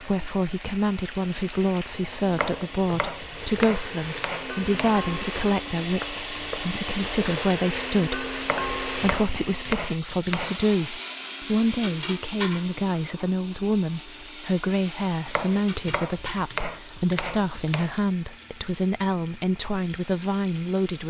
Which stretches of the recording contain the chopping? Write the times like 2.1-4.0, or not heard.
2.3-5.0, 8.4-10.6, 15.2-17.9.